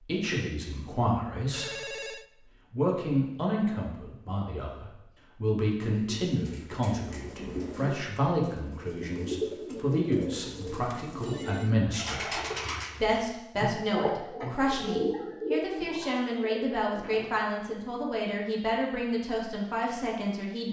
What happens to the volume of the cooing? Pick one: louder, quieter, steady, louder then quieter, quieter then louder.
louder.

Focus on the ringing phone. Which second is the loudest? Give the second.
2 s.